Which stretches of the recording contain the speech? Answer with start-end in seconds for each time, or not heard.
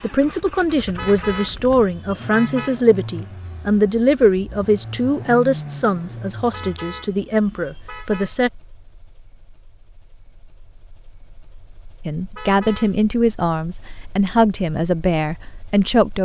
0.0-8.5, 12.1-16.1.